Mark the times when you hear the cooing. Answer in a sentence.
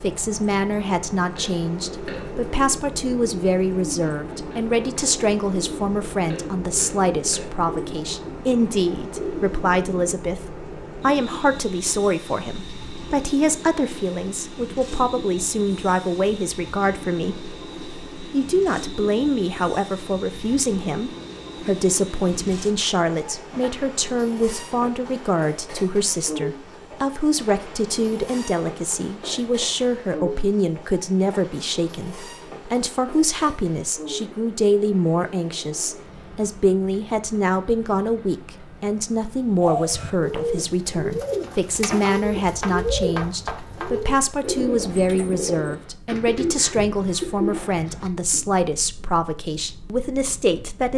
The cooing can be heard from 1.4 to 10.2 s and from 39.6 to 48.5 s.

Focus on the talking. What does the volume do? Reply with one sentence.
The volume of the talking stays about the same.